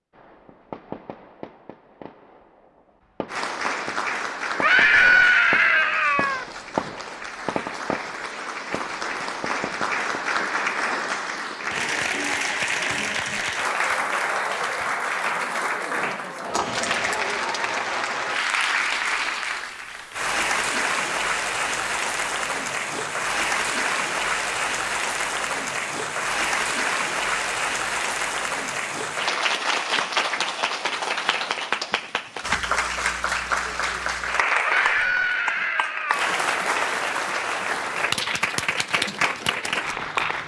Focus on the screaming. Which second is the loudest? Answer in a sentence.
The loudest moment of the screaming is at 5 seconds.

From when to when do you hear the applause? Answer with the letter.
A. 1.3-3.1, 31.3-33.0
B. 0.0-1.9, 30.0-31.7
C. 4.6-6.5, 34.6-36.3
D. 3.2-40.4
D.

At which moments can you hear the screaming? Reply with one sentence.
You can hear the screaming from 4.6 to 6.5 s and from 34.6 to 36.3 s.